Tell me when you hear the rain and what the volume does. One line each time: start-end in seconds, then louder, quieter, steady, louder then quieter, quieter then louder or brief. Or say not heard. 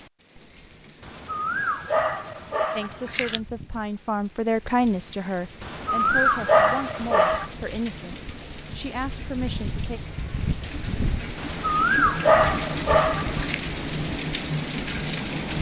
0.0-15.5 louder.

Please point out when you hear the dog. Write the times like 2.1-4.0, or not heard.
1.0-3.4, 5.6-7.5, 11.3-13.6.